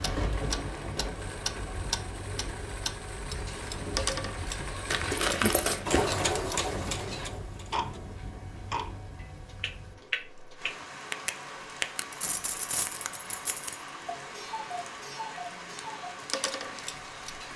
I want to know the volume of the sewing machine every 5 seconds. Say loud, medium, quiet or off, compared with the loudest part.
medium, loud, off, off.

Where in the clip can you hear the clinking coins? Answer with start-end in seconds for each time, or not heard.
4.9-6.2, 12.1-13.8.